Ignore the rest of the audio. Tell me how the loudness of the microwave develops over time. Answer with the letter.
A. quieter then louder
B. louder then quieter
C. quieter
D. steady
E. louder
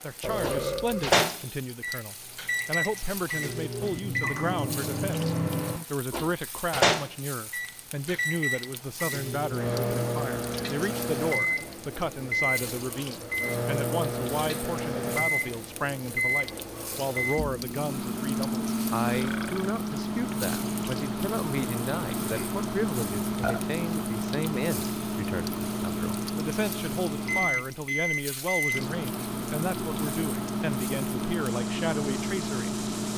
D.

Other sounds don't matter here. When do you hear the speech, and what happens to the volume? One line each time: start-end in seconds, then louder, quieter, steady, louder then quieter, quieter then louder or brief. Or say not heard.
0.0-33.1 steady.